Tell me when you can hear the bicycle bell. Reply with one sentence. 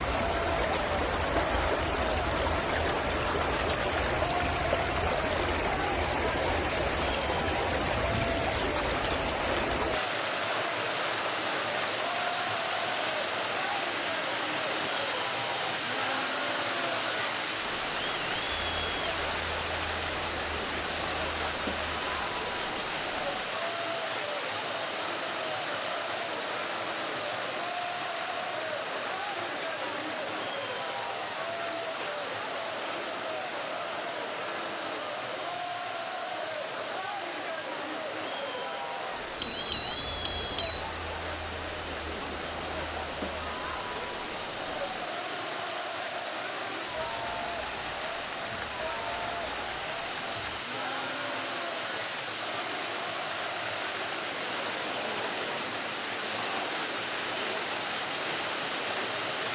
You can hear the bicycle bell from 39.4 to 40.8 s.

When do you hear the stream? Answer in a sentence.
You can hear the stream from 0.0 to 59.5 s.